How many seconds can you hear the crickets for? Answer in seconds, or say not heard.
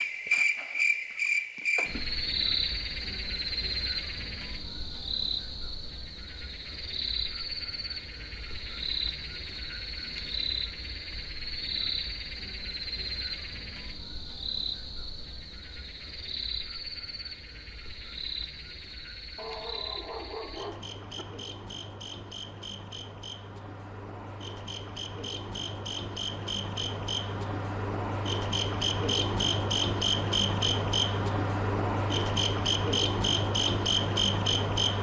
35 s.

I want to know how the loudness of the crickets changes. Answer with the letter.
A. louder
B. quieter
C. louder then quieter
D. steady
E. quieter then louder
E.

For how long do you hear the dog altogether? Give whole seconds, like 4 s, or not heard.
2 s.